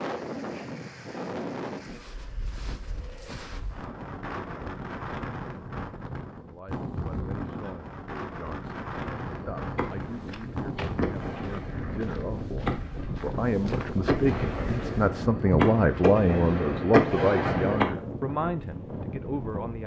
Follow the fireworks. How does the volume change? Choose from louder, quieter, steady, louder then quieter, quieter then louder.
louder.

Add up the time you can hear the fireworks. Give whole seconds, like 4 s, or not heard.
9 s.